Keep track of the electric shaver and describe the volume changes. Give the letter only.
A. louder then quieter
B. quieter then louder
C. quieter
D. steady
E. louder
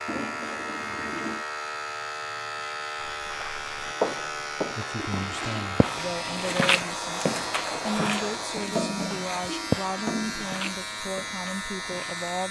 D.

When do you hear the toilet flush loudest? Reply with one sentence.
The loudest moment of the toilet flush is at 9 seconds.